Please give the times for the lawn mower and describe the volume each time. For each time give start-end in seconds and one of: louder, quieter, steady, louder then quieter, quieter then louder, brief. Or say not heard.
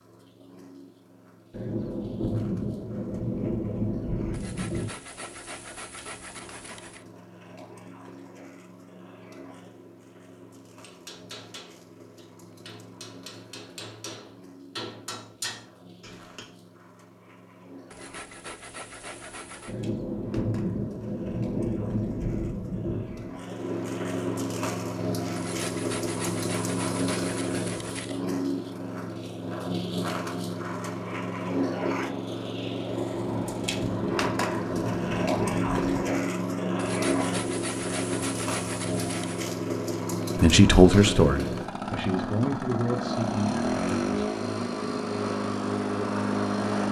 0.0-46.8 louder.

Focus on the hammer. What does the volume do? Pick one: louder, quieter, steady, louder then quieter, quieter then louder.
louder.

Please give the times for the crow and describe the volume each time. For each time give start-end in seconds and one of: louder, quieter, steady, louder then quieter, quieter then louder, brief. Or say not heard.
not heard.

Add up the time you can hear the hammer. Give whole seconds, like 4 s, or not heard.
6 s.